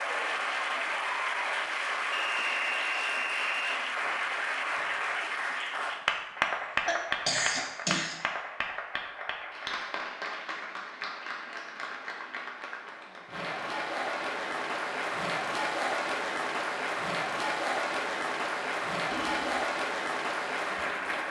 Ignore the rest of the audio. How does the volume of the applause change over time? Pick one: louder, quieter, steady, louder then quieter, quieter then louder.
quieter then louder.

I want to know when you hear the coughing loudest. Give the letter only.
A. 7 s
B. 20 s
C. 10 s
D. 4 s
A.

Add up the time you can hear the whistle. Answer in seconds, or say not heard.
2 s.